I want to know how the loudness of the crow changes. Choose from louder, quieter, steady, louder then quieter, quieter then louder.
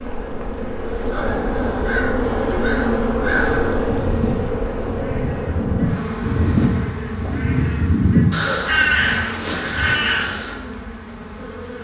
louder.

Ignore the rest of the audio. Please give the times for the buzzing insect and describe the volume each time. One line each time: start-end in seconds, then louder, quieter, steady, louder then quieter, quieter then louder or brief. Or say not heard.
0.0-11.7 quieter.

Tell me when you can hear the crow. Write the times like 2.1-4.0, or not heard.
1.7-10.6.